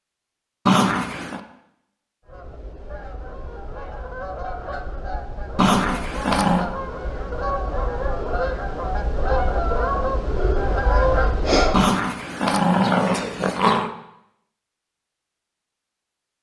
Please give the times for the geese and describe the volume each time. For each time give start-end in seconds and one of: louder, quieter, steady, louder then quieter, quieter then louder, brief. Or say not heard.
2.2-11.8 louder.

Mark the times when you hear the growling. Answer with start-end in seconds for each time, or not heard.
0.7-1.4, 5.5-6.7, 11.7-13.9.